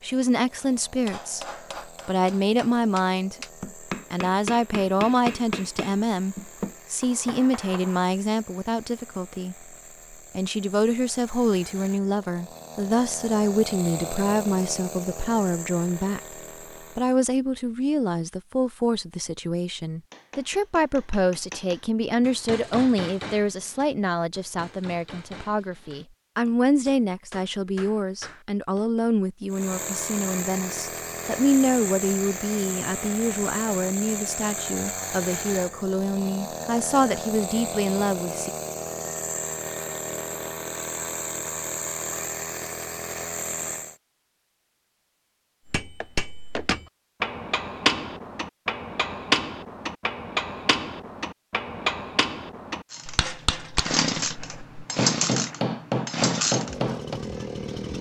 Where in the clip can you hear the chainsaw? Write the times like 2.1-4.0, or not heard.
0.0-17.2, 29.5-44.0, 52.9-57.9.